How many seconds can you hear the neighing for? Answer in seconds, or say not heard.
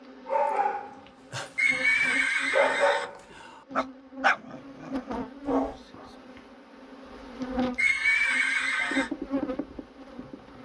3 s.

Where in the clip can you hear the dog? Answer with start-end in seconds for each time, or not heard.
0.2-5.8.